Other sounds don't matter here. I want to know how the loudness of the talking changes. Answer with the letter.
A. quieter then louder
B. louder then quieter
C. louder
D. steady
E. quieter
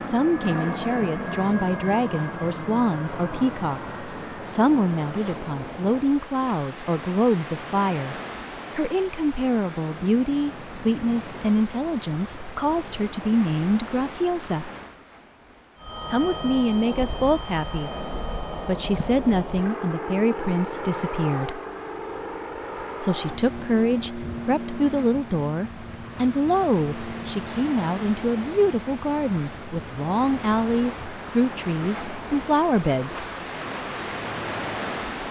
D.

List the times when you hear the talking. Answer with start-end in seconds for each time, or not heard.
0.0-8.2, 8.8-14.7, 16.1-21.6, 23.0-33.2.